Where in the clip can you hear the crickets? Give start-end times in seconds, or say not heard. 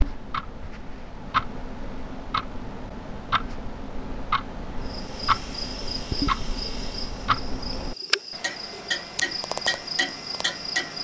4.8-10.9.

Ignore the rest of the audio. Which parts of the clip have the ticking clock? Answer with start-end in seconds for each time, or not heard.
0.0-10.9.